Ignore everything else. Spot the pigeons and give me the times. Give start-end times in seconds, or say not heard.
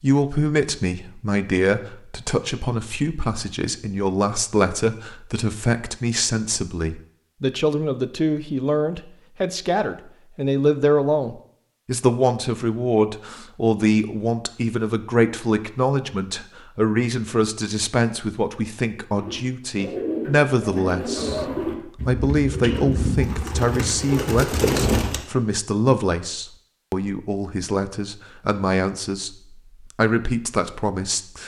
19.1-25.2.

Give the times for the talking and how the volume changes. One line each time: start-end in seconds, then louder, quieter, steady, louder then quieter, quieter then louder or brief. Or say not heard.
0.0-31.4 steady.